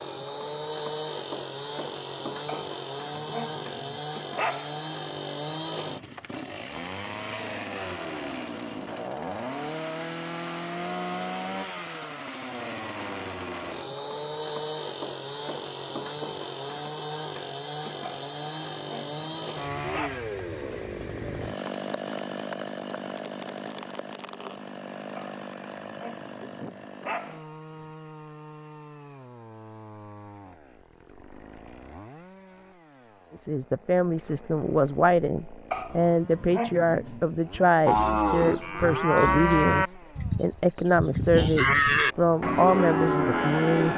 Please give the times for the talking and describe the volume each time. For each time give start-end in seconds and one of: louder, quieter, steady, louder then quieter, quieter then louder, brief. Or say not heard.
33.4-43.9 steady.